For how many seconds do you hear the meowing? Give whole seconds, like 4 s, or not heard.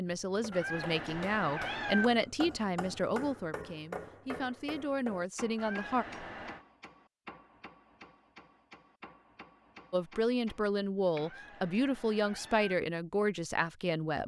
4 s.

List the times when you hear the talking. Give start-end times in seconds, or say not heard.
0.0-6.0, 9.9-14.2.